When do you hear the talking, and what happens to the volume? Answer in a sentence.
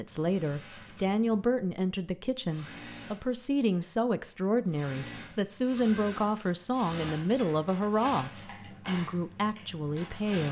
You can hear the talking from 0.0 to 10.4 s, at a steady volume.